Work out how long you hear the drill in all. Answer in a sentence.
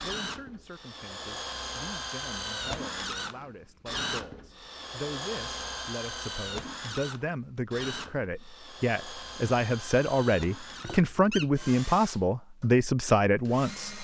You can hear the drill for 14 seconds altogether.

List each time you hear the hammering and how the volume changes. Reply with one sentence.
The hammering can't be heard in this clip.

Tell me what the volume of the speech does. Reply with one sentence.
The loudness of the speech goes up.